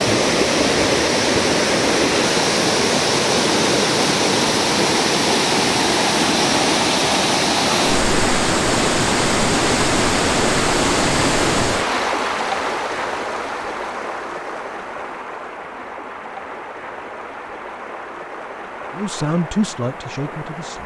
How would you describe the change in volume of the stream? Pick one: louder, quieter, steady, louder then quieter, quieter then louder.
quieter.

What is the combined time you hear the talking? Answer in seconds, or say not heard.
2 s.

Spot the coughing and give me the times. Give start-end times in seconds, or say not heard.
not heard.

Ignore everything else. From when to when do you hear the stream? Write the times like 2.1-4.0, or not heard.
0.0-20.8.